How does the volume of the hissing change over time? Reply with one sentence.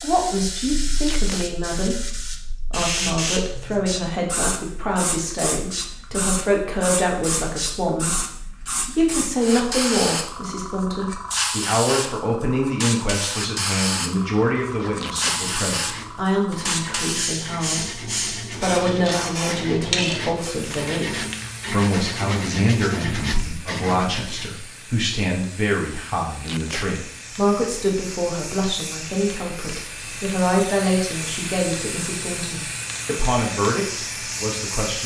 The loudness of the hissing goes down, then up.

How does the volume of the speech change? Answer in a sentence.
The volume of the speech stays about the same.